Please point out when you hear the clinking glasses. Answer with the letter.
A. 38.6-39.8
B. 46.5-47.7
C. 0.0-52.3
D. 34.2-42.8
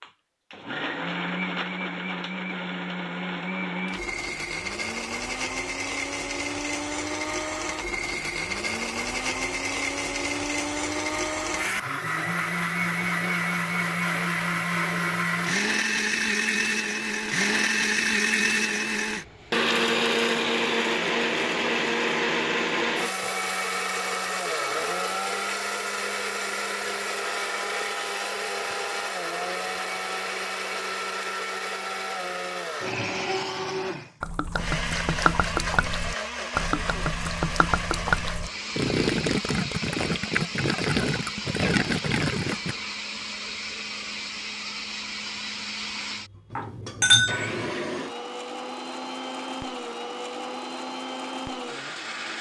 B.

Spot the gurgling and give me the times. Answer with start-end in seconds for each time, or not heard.
34.2-42.8.